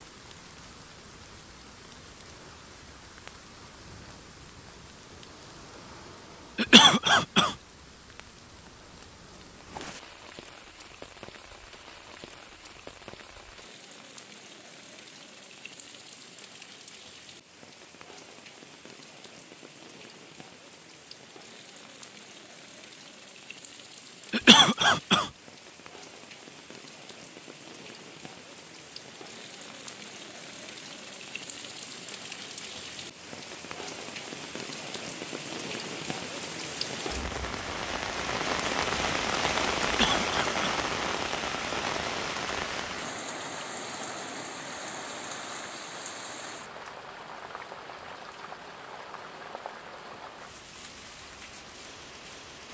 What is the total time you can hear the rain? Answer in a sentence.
You can hear the rain for 53 seconds altogether.